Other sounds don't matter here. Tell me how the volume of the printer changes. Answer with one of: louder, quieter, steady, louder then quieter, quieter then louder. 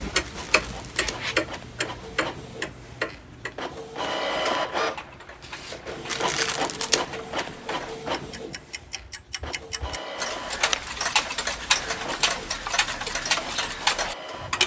louder then quieter.